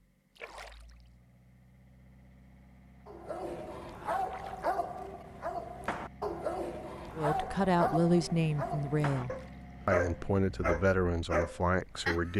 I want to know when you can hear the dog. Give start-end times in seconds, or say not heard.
3.0-12.3.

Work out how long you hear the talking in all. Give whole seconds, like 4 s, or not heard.
5 s.